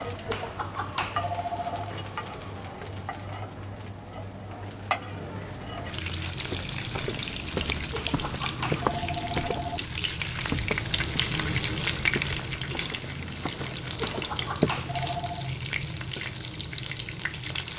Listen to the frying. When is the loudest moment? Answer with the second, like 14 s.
12 s.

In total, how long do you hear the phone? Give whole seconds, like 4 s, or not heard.
5 s.